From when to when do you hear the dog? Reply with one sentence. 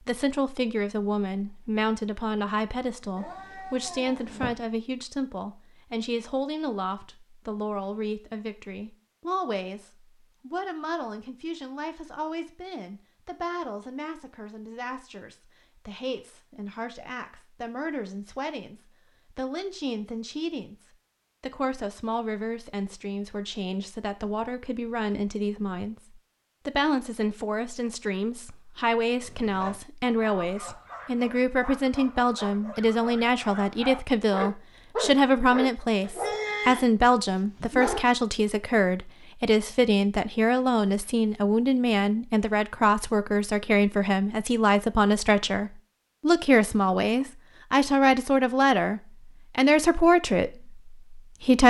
You can hear the dog from 29.2 to 38.0 s.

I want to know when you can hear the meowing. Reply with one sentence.
You can hear the meowing from 3.1 to 4.5 s.